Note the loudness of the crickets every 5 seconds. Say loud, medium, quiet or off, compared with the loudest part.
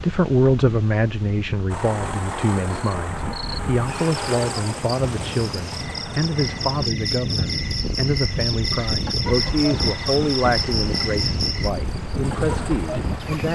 medium, loud, loud.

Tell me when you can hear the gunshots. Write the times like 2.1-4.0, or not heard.
not heard.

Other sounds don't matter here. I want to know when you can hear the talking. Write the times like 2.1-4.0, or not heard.
0.0-13.5.